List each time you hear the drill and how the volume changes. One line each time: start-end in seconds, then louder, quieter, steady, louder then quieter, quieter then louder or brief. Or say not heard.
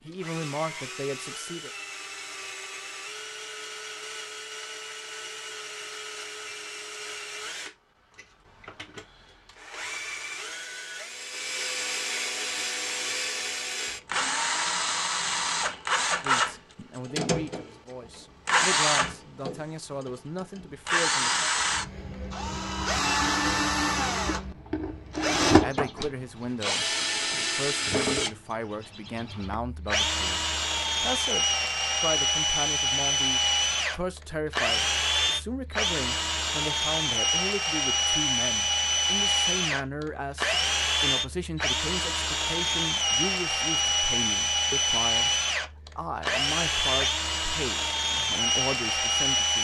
0.1-49.5 louder.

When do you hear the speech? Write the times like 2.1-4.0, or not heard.
0.1-1.7, 16.2-21.5, 25.5-45.3, 46.0-49.5.